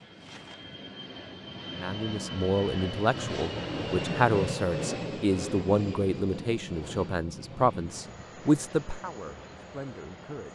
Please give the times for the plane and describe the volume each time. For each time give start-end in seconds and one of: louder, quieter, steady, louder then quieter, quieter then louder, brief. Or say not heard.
0.0-10.5 louder then quieter.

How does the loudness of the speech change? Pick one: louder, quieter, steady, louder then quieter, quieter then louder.
steady.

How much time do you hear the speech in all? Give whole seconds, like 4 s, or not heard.
9 s.